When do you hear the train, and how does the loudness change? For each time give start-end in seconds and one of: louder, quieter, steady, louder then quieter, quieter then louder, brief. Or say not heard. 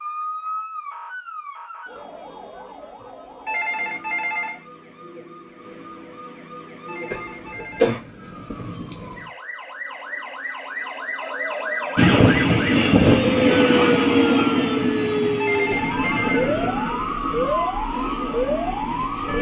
11.9-19.3 quieter.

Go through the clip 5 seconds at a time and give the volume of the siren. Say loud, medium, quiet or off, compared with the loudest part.
medium, quiet, loud, loud.